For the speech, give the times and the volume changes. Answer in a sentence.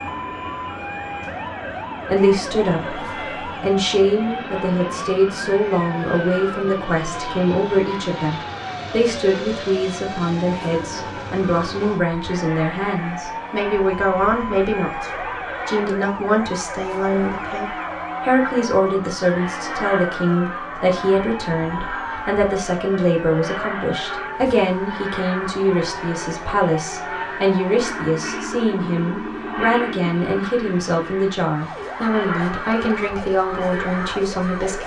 The speech can be heard from 2.0 to 34.8 s, at a steady volume.